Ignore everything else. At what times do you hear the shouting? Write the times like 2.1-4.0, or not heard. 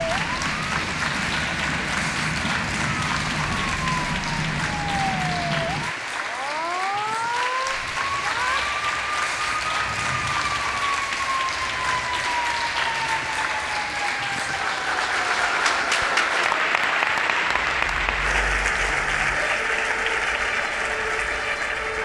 8.2-8.7.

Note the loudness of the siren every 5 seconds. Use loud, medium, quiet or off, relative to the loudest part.
loud, loud, loud, medium, loud.